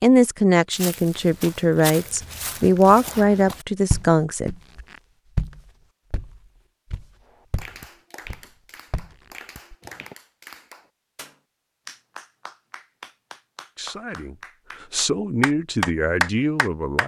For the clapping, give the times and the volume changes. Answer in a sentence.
The clapping can be heard from 7.2 to 17.0 s, getting louder.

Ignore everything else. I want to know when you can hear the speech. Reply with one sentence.
You can hear the speech from 0.0 to 4.5 s and from 13.8 to 17.0 s.